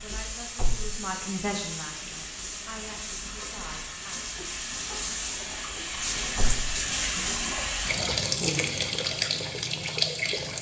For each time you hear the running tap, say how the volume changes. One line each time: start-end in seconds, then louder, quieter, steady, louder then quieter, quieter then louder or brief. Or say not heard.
0.0-10.5 louder.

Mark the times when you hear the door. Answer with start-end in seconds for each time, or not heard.
0.6-1.0, 6.3-6.8.